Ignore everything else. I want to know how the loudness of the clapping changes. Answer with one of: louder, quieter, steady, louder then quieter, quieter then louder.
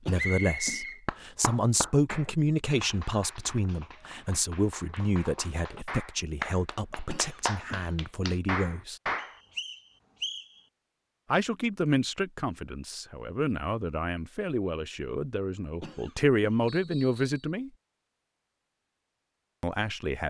quieter then louder.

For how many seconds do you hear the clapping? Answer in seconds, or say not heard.
8 s.